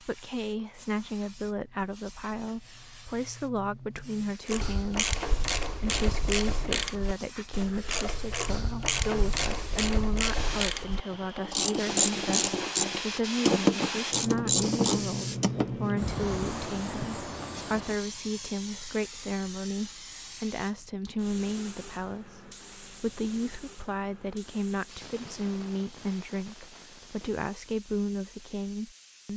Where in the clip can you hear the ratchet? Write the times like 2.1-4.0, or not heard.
4.5-15.8.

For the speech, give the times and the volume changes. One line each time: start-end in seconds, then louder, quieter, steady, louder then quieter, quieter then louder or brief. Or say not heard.
0.0-29.3 steady.